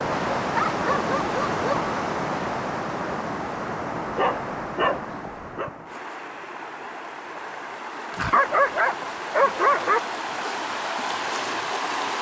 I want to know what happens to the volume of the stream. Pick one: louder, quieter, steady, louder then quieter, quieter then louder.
quieter then louder.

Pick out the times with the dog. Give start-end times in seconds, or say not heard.
0.4-1.9, 4.1-5.7, 8.1-10.0.